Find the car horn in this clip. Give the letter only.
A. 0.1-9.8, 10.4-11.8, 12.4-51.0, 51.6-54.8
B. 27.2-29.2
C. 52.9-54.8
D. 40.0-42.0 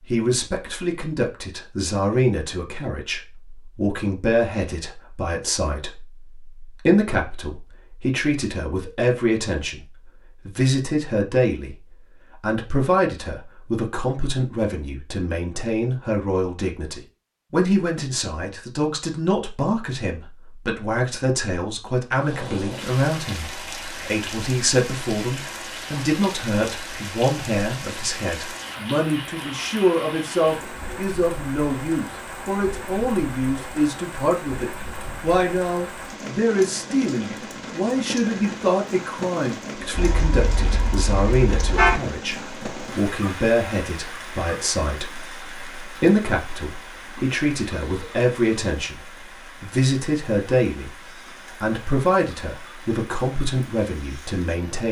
D.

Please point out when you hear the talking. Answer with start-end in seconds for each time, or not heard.
0.1-9.8, 10.4-11.8, 12.4-51.0, 51.6-54.8.